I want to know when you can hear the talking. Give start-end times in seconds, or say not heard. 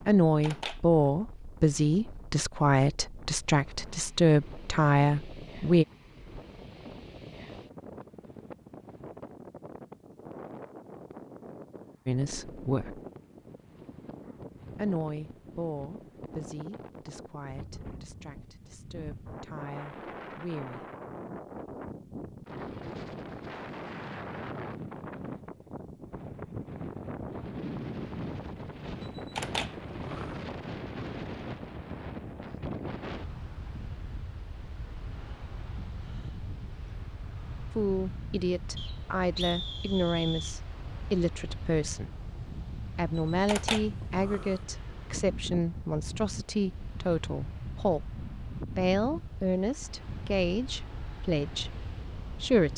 0.1-5.8, 12.1-13.0, 14.8-20.9, 37.7-42.1, 43.0-48.0, 48.7-52.7.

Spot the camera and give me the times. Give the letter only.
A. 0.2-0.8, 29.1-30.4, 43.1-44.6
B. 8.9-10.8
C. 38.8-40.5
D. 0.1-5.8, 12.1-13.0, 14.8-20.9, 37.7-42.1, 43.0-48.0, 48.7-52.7
A.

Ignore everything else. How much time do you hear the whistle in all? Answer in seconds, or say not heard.
2 s.